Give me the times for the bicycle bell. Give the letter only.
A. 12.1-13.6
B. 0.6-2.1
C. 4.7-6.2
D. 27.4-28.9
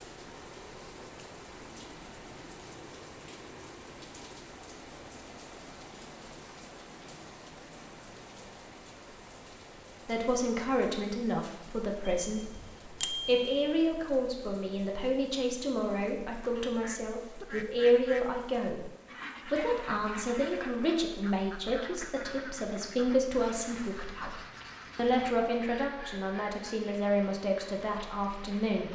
A.